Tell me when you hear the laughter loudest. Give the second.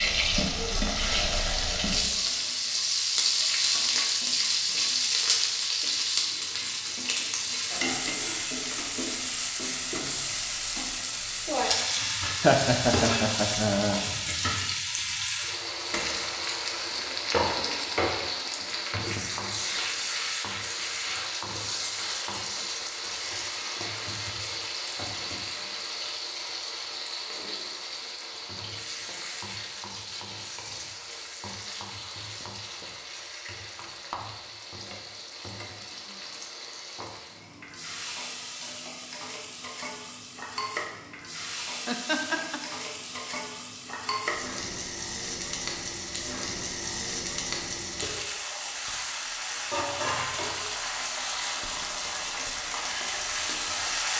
13 s.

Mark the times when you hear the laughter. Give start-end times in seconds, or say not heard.
12.4-14.0, 41.9-42.6.